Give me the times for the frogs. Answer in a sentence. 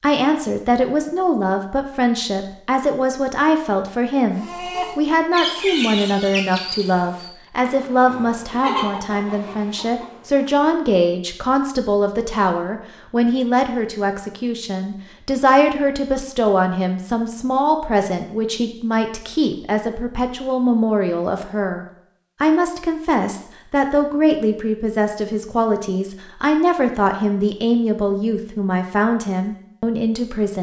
You can't hear the frogs here.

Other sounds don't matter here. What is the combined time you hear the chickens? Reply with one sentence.
You can hear the chickens for 6 seconds altogether.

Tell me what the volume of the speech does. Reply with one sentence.
The loudness of the speech stays about the same.